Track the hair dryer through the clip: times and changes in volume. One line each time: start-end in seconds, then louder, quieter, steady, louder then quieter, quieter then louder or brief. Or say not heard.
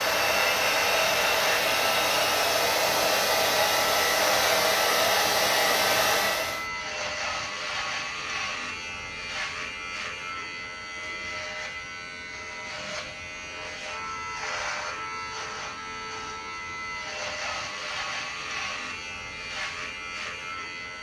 0.0-6.7 steady.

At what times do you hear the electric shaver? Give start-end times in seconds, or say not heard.
0.0-20.9.